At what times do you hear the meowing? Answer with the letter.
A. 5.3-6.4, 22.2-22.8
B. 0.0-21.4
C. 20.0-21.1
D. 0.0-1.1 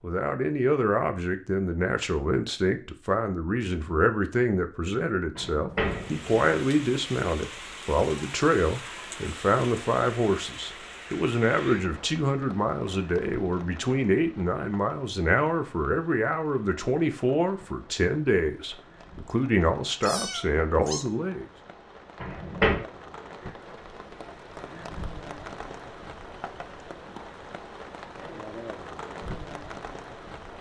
C.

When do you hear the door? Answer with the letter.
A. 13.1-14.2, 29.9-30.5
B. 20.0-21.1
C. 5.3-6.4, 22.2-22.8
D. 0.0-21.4
C.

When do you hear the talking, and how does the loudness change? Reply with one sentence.
You can hear the talking from 0.0 to 21.4 s, at a steady volume.